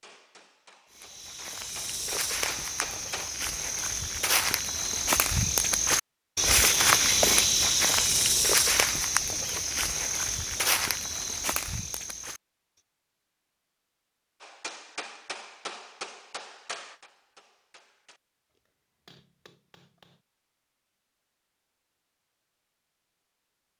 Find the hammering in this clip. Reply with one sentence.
You can hear the hammering from 0.0 to 3.3 s and from 14.4 to 20.2 s.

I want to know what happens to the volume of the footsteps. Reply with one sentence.
The loudness of the footsteps goes up, then down.